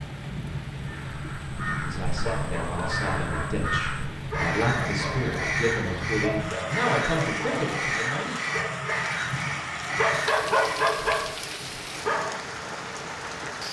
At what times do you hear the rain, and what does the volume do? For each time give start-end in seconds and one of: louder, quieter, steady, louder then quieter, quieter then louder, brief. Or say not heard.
0.0-13.6 steady.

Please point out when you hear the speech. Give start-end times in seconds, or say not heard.
1.9-8.3.